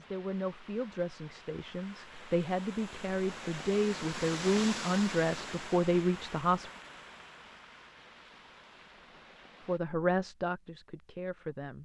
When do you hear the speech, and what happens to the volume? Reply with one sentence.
The speech can be heard from 0.0 to 6.7 s, getting louder; and briefly from 9.6 to 11.7 s.